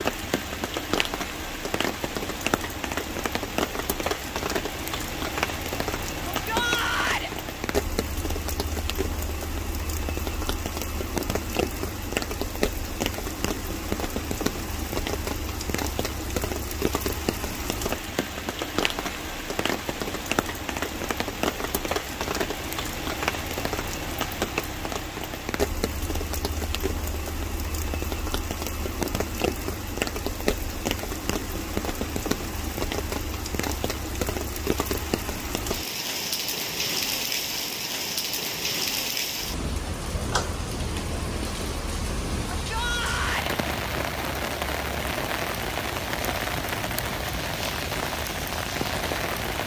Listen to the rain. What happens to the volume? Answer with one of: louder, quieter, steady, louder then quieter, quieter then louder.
steady.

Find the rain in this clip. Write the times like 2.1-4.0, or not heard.
0.0-49.6.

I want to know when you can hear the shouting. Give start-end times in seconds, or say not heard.
6.2-7.3, 42.5-43.5.